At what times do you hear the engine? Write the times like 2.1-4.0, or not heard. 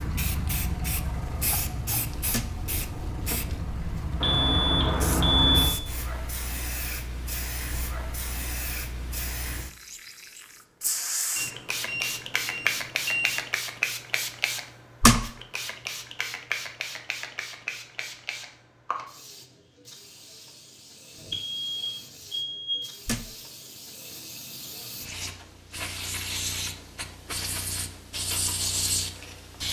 0.0-5.8.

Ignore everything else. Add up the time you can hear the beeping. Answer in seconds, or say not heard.
5 s.